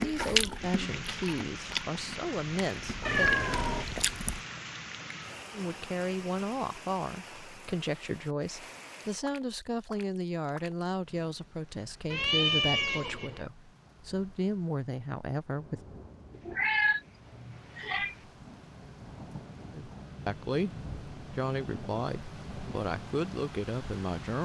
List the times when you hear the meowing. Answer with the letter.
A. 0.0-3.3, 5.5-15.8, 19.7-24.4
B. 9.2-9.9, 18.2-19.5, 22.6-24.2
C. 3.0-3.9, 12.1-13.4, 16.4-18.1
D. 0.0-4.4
C.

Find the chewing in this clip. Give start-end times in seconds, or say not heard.
0.0-4.4.